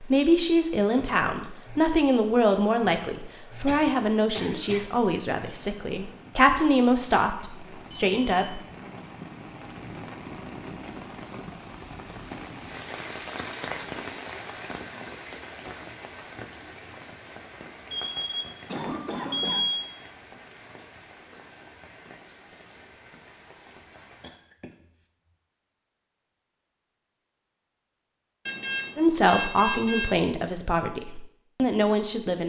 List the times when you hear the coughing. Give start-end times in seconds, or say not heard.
3.6-4.8, 18.6-19.6, 24.2-24.7.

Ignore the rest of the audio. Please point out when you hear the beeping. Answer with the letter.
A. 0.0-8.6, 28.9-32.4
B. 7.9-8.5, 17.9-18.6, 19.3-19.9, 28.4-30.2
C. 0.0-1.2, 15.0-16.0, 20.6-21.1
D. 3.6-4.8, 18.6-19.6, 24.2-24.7
B.